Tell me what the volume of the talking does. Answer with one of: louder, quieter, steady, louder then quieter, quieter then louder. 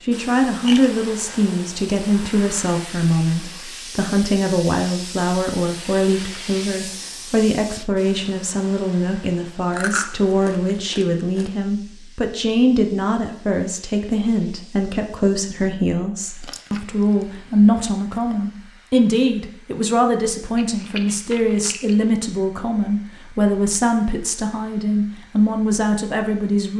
steady.